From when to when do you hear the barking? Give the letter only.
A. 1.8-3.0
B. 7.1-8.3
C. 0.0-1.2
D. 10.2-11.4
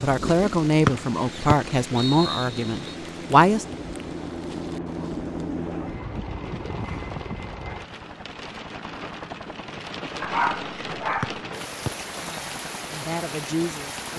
D.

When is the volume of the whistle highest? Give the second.
1 s.